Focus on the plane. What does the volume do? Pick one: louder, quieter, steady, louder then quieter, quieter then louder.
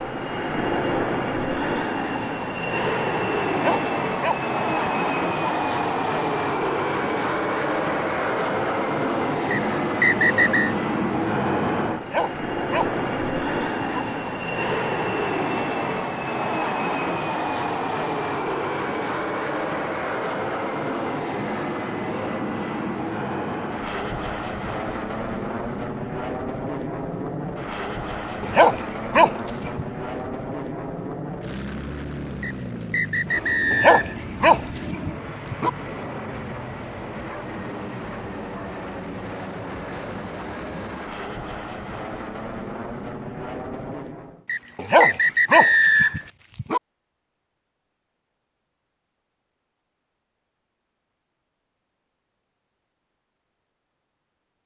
quieter.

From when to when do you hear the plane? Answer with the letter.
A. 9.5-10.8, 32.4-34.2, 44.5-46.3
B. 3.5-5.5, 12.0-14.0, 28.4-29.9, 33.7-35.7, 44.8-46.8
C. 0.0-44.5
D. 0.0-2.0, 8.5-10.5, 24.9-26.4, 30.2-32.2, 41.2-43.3
C.